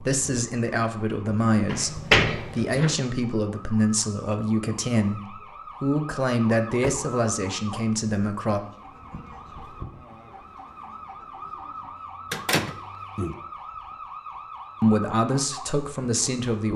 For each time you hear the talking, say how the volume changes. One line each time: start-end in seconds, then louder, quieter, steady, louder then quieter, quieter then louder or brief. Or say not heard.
0.0-8.6 steady
14.8-16.7 brief.